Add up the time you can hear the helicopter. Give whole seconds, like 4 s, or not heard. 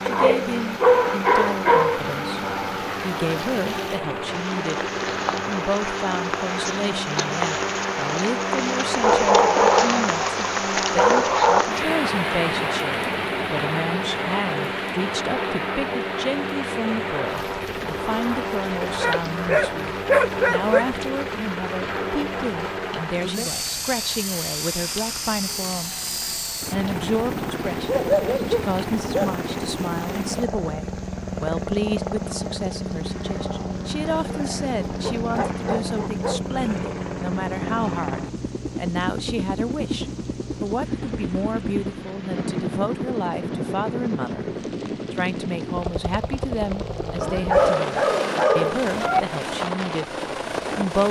51 s.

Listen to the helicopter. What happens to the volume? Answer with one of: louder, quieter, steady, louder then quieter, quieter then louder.
steady.